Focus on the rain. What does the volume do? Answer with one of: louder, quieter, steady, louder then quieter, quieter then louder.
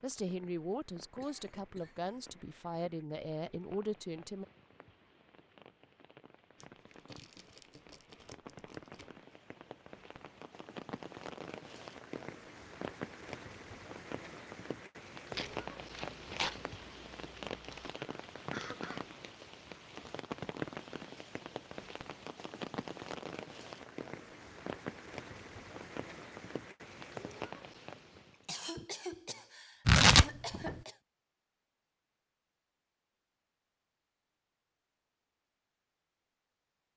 louder.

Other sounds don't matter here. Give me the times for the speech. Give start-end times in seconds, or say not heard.
0.0-4.5.